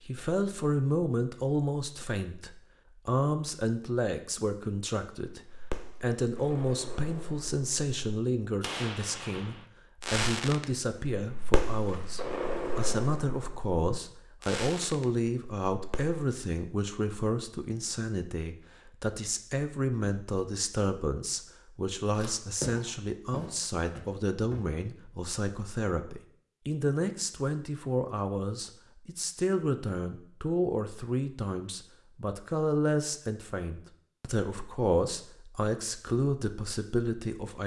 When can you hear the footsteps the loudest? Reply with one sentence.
The loudest moment of the footsteps is at 23 seconds.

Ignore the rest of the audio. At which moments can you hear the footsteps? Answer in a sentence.
You can hear the footsteps from 22.1 to 24.6 s.